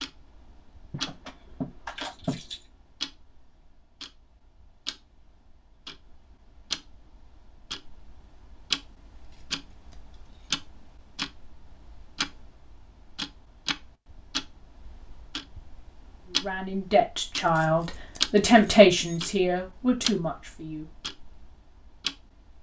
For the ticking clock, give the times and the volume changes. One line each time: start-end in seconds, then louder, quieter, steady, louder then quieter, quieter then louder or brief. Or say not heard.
0.0-22.5 louder.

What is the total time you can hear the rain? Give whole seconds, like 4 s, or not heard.
not heard.